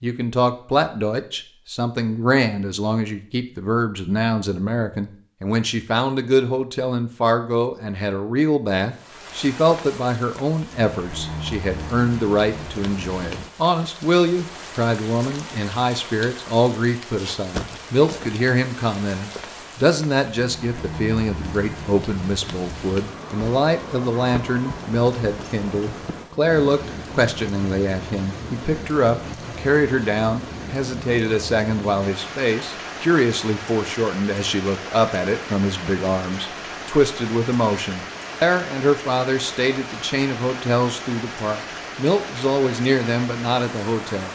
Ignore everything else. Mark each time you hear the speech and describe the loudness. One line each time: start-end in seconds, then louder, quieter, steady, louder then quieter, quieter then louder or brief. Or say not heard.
0.0-44.2 steady.